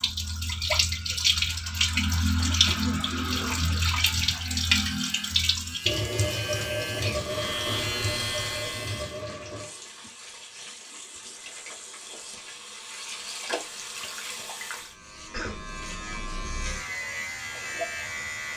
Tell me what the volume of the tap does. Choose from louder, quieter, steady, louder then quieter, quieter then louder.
quieter.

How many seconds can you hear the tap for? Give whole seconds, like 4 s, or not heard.
15 s.